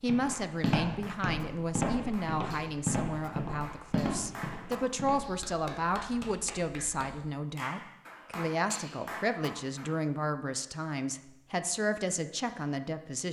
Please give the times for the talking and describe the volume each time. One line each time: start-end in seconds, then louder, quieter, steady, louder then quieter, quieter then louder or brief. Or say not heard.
0.0-13.2 steady.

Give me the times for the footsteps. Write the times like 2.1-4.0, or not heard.
0.0-5.3.